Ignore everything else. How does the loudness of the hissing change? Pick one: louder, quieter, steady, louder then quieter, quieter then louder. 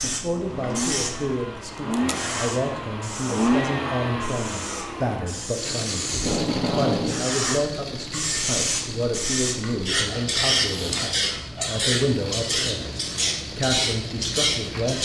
louder.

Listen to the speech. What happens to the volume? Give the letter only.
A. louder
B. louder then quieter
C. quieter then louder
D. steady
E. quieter
D.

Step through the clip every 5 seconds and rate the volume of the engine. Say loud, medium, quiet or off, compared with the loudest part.
loud, medium, medium.